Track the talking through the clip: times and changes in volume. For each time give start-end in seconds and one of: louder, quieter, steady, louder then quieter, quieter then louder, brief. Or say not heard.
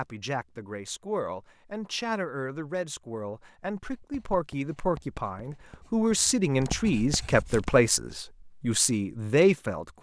0.0-9.9 louder.